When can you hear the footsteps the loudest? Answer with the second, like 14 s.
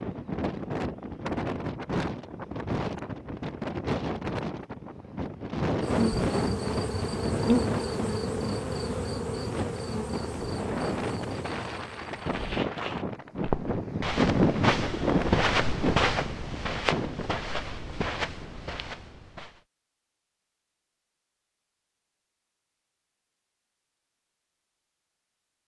15 s.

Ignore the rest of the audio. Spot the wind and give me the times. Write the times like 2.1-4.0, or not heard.
0.0-17.4.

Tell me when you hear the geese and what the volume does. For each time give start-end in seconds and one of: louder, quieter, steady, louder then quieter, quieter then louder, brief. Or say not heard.
not heard.